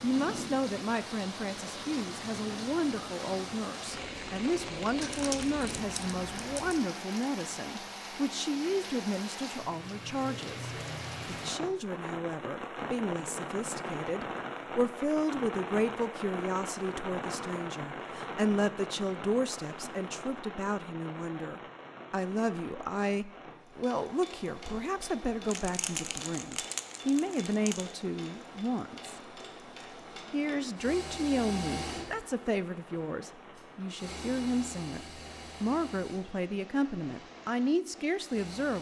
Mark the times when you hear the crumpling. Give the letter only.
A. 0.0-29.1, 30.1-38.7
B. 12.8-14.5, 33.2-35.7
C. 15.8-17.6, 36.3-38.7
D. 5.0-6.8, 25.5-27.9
D.